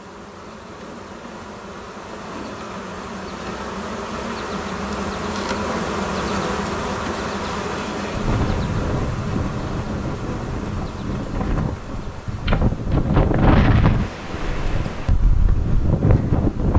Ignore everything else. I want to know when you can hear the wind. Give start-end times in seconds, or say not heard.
8.1-16.7.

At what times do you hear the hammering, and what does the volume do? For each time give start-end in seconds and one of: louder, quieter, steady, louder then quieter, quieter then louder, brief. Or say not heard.
not heard.